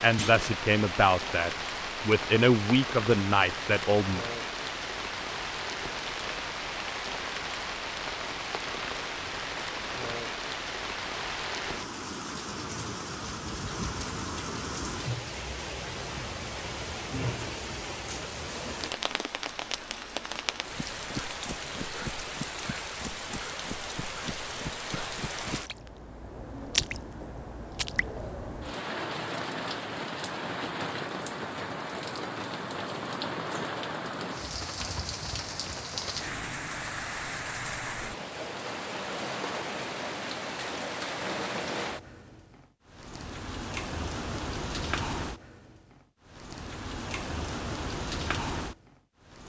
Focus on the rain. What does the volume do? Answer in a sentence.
The loudness of the rain stays about the same.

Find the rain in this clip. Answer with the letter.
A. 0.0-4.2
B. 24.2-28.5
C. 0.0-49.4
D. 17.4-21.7
C.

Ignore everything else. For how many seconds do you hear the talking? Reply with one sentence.
You can hear the talking for 4 seconds altogether.